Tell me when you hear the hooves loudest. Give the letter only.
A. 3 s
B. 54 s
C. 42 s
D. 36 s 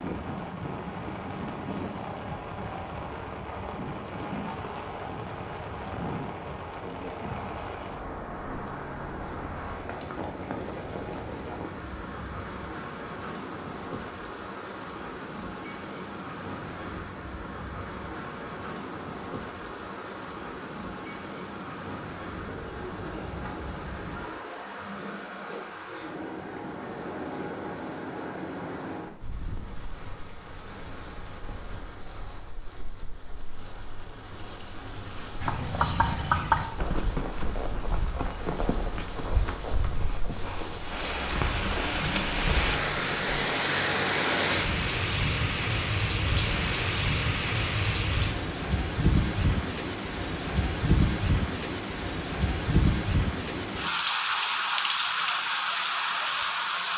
D.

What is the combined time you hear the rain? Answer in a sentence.
You can hear the rain for 57 seconds altogether.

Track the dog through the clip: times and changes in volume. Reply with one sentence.
The dog can't be heard in this clip.